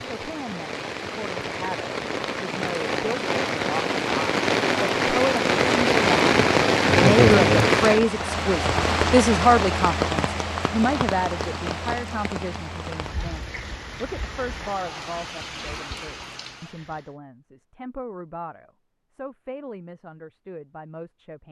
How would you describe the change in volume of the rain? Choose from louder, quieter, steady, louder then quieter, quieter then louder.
louder then quieter.